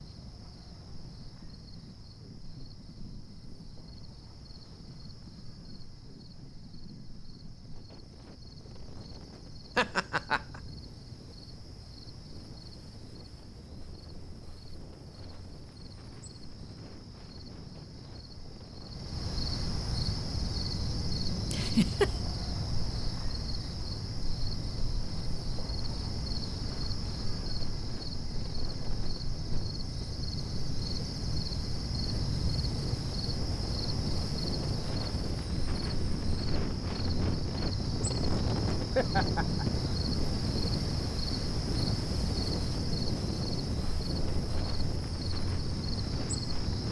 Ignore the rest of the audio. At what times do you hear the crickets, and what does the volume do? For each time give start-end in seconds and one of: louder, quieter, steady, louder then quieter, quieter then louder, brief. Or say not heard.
0.0-46.8 louder.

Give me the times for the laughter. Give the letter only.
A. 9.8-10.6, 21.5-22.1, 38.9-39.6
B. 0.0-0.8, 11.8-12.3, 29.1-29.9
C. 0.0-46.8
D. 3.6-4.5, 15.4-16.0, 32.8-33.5
A.